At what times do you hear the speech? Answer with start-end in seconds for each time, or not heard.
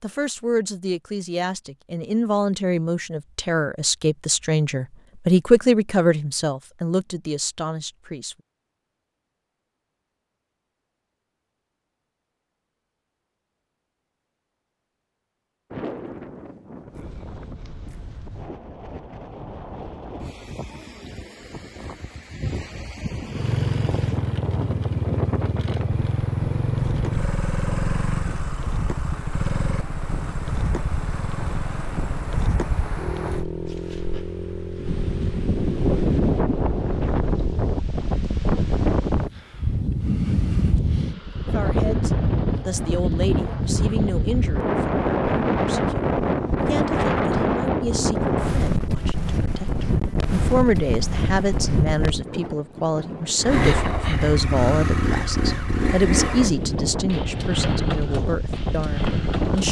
0.0-8.3, 41.5-59.6.